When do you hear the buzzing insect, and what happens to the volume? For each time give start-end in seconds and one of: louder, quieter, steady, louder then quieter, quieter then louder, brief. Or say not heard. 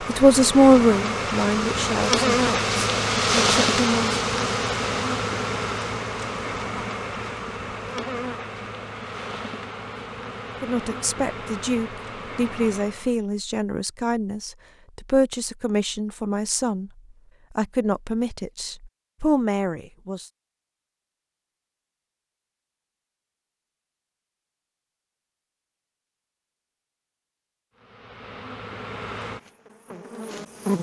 0.0-13.2 quieter
27.8-30.7 brief.